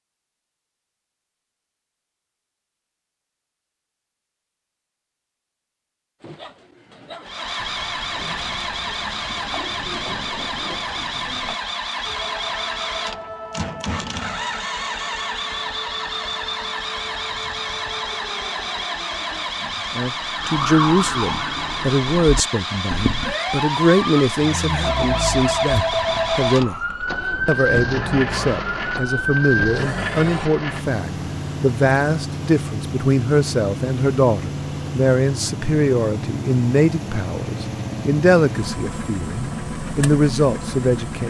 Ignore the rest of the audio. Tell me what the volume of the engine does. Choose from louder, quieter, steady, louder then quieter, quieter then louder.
steady.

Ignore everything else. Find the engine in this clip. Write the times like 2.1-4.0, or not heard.
7.2-41.2.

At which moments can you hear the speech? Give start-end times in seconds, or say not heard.
19.6-41.2.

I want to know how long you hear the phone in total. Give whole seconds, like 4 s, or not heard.
3 s.